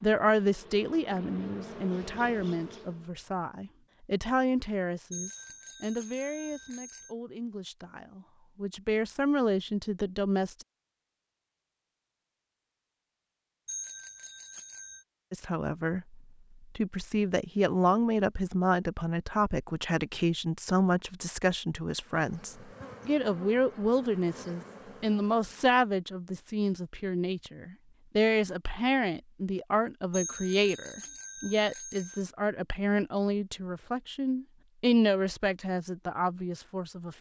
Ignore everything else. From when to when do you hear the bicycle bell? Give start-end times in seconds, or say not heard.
5.1-7.1, 13.7-15.1, 30.1-32.2.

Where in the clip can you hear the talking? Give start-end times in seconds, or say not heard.
0.0-10.7, 15.3-37.1.